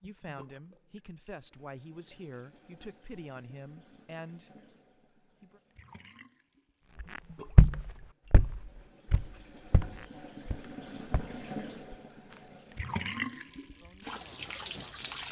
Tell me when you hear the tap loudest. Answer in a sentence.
The loudest moment of the tap is at 13 seconds.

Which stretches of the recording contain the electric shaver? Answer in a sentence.
You can't hear the electric shaver here.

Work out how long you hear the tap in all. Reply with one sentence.
The tap can be heard for 15 seconds in total.